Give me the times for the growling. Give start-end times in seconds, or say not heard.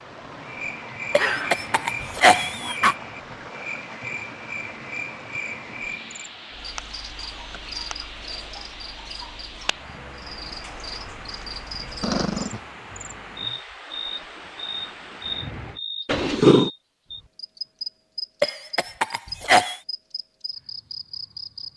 1.1-2.8, 12.0-12.6, 16.1-16.7.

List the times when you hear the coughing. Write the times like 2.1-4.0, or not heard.
1.1-3.0, 18.4-19.8.